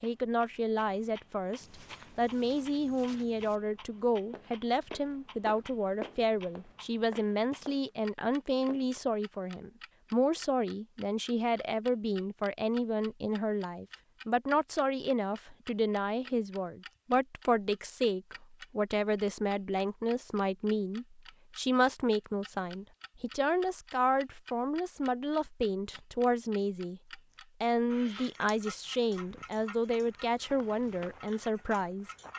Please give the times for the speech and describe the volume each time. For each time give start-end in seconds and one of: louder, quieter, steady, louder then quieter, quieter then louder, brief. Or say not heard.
0.0-32.0 steady.